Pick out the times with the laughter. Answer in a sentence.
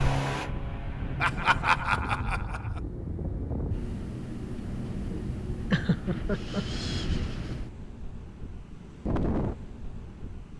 You can hear the laughter from 1.2 to 2.8 s and from 5.7 to 6.7 s.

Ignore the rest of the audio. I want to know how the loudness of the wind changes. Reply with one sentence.
The volume of the wind stays about the same.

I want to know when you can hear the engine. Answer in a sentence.
The engine can be heard from 0.0 to 2.0 s.